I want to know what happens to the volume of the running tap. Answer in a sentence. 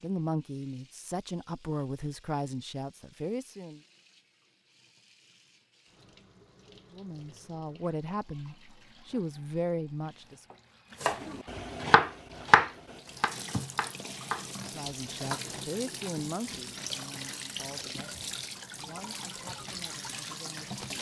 The volume of the running tap goes up.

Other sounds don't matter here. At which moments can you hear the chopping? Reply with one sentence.
You can hear the chopping from 11.0 to 15.4 s.